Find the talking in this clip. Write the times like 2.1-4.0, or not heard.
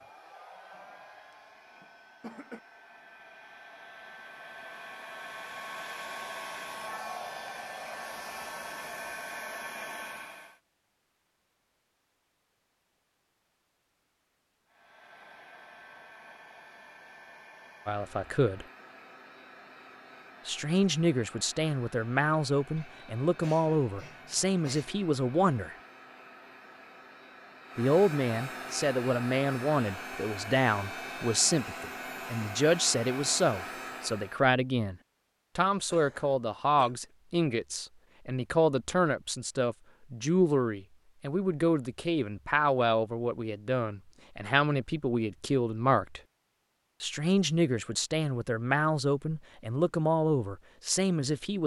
17.9-18.6, 20.4-25.8, 27.8-35.0, 35.5-46.2, 47.0-51.6.